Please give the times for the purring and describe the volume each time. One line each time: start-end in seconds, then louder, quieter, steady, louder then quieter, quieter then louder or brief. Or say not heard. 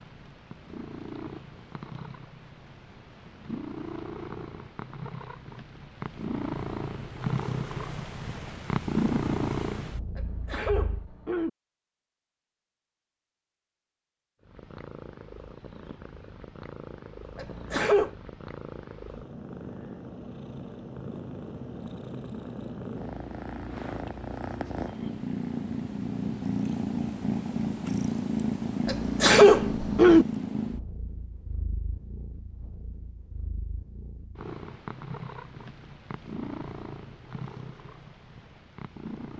0.0-11.1 louder
14.4-39.3 louder then quieter.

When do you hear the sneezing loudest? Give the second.
29 s.